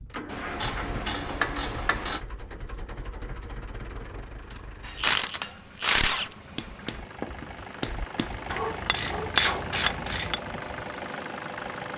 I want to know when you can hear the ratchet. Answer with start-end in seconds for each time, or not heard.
0.2-2.2, 4.5-6.3, 8.4-10.3.